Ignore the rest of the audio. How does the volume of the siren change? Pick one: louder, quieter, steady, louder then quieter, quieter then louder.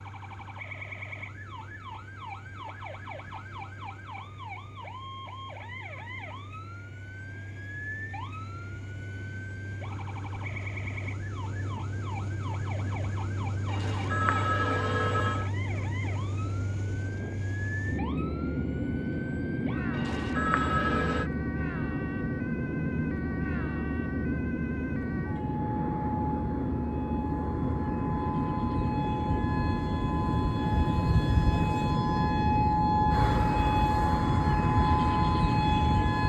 louder.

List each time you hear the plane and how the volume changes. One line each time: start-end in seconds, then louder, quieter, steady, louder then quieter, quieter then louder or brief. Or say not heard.
0.0-36.2 louder.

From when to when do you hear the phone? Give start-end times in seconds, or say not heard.
13.7-15.5, 19.9-21.3.